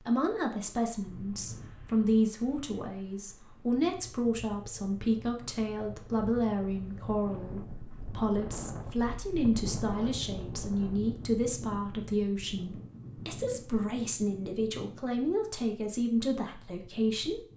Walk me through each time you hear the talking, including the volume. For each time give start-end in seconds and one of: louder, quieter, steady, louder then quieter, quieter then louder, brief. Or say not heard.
0.0-17.4 steady.